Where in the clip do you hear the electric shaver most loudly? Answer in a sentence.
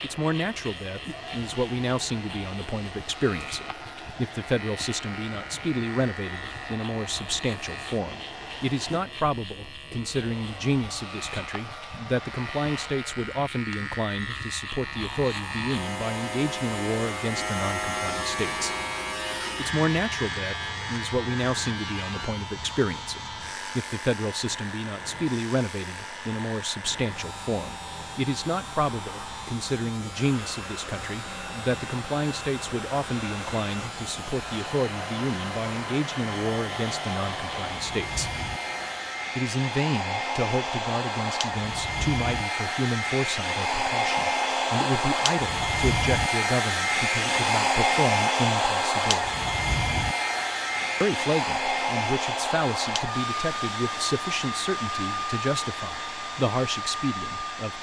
The volume of the electric shaver peaks at 18 seconds.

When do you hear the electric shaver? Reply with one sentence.
The electric shaver can be heard from 0.0 to 39.4 s.